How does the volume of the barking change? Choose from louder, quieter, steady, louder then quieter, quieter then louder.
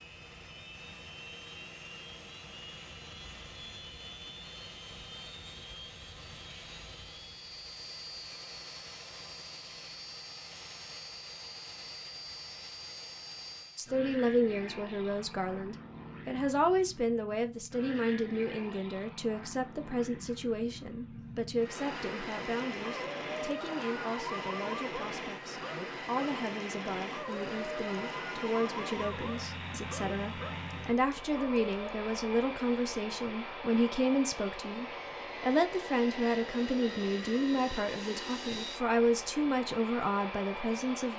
steady.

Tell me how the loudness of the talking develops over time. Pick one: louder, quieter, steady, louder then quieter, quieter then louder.
quieter then louder.